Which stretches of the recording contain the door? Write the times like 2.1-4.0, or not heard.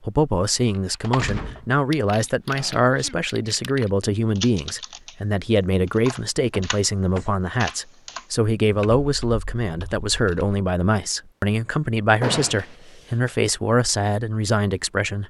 1.1-1.8, 6.5-7.2, 12.2-12.8.